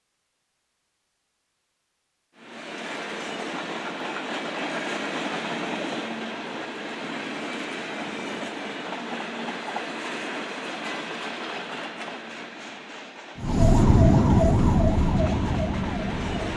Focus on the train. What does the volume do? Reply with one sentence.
The loudness of the train goes down.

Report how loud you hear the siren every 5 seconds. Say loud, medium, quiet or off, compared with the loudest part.
off, off, loud, medium.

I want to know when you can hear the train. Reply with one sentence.
The train can be heard from 2.4 to 16.5 s.